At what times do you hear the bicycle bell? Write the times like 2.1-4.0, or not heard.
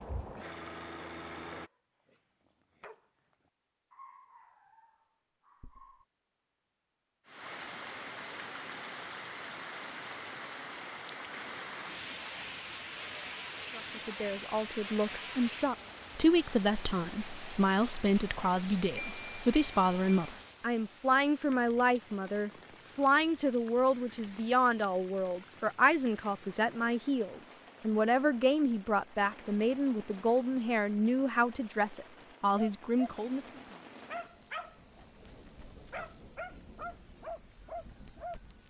18.9-20.3.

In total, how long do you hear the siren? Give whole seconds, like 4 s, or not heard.
not heard.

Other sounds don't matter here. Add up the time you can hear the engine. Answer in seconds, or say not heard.
2 s.